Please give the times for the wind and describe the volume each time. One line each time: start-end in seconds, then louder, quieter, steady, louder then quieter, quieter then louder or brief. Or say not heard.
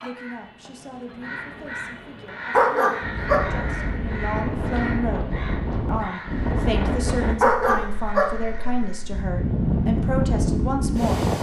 3.0-11.3 quieter then louder.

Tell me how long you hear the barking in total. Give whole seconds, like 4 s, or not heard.
2 s.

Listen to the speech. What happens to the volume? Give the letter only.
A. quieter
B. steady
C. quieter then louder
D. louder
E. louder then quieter
D.